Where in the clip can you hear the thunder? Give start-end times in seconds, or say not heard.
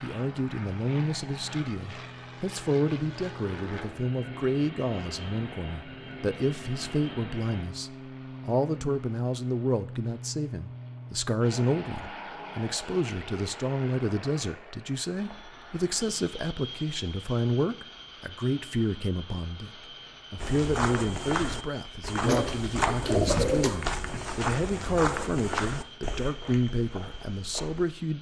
not heard.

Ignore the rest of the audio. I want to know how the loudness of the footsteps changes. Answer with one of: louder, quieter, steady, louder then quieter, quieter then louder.
quieter.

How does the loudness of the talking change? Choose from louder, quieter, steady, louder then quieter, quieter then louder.
steady.